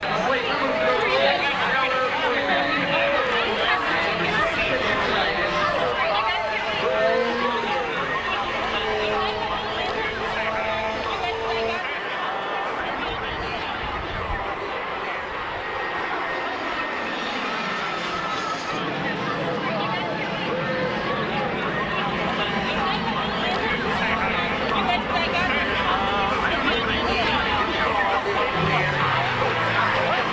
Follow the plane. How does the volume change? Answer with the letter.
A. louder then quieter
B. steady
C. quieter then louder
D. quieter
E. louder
B.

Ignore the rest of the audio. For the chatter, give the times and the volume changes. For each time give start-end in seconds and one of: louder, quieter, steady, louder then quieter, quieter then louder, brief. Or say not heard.
0.0-30.2 quieter then louder.